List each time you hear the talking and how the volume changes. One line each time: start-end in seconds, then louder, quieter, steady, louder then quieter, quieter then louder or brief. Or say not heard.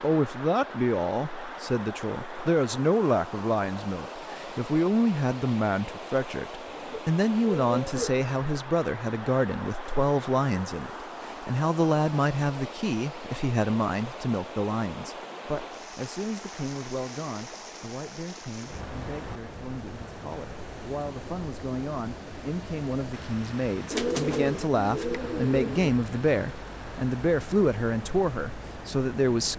0.0-29.5 quieter then louder.